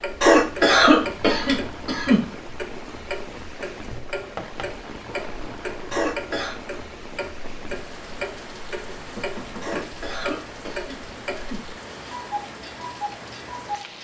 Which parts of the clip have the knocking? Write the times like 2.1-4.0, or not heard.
3.9-4.7, 9.2-9.8.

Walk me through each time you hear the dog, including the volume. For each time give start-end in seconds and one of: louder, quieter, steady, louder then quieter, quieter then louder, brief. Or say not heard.
not heard.